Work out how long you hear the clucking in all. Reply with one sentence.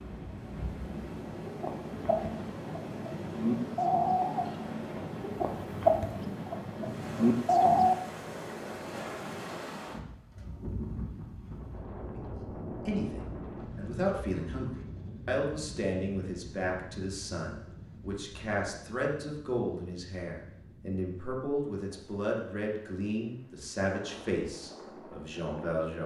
The clucking can be heard for 7 seconds in total.